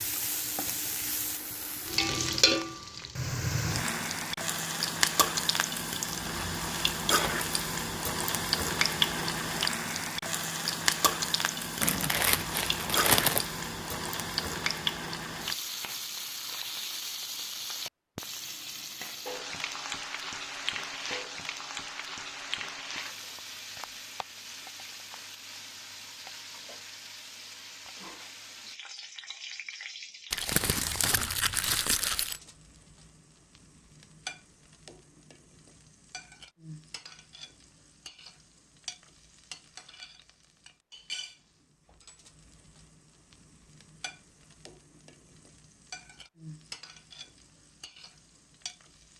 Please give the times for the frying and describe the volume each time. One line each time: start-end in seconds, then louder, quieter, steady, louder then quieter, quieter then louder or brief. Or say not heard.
0.0-49.1 quieter.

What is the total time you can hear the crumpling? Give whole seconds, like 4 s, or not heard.
4 s.